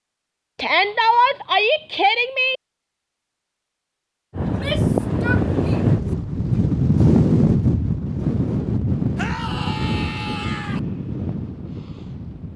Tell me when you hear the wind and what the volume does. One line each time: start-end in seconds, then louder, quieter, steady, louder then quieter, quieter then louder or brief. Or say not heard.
4.3-12.5 quieter.